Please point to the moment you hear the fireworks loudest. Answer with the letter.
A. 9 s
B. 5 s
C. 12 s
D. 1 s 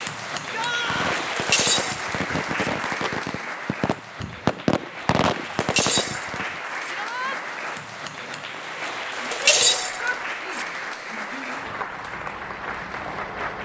B.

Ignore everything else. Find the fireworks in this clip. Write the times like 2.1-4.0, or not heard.
0.8-6.6.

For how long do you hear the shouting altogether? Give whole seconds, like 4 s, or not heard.
3 s.